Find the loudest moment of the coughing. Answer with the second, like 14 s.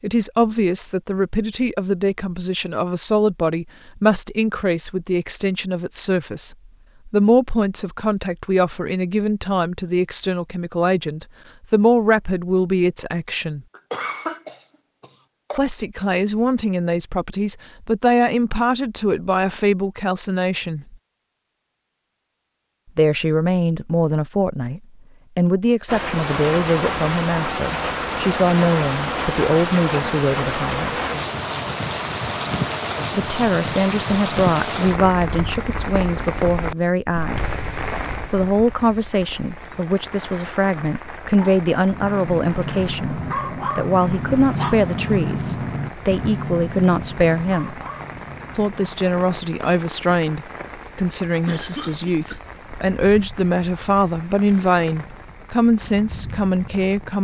14 s.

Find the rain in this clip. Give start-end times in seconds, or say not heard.
25.9-57.1.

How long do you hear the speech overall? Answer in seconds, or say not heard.
50 s.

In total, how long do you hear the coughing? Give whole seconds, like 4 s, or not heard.
3 s.